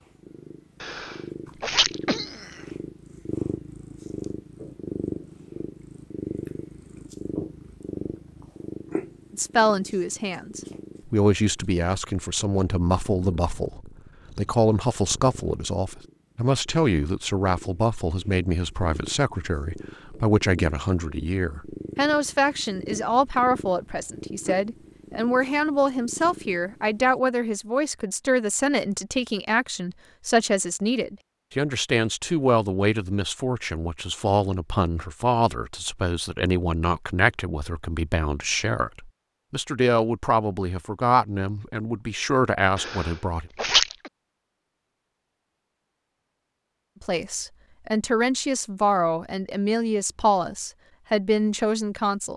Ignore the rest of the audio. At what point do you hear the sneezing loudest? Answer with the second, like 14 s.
44 s.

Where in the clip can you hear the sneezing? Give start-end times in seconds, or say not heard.
0.8-2.6, 42.8-44.1.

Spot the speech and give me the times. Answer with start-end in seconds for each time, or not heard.
9.3-43.5, 47.0-52.3.